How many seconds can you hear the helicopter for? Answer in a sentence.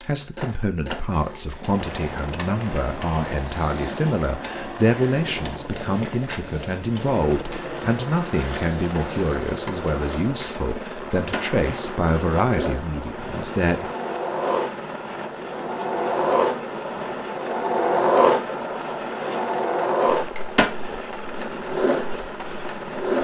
You can hear the helicopter for 22 seconds altogether.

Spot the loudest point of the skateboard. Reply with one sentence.
The volume of the skateboard peaks at 18 seconds.